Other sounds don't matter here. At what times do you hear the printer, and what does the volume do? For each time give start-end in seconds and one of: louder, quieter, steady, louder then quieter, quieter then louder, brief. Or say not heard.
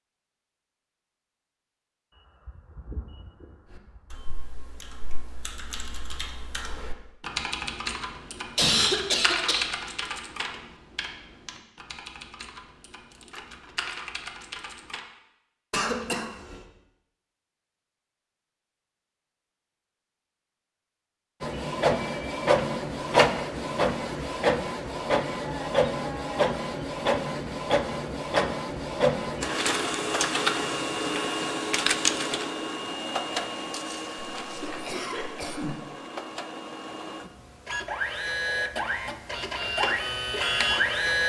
21.4-41.2 quieter then louder.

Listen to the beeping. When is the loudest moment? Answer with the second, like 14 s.
3 s.